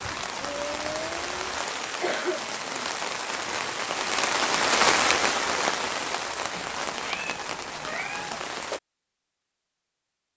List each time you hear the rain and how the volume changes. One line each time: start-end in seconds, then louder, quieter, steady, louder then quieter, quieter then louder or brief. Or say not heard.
0.0-8.8 louder then quieter.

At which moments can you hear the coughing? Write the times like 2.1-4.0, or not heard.
2.0-2.9.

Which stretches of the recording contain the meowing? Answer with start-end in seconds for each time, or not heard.
0.3-1.6, 6.5-8.5.